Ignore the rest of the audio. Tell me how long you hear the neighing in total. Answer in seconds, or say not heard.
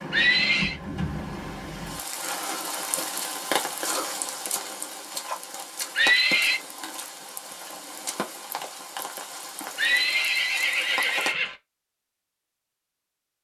3 s.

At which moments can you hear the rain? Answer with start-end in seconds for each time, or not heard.
0.0-11.3.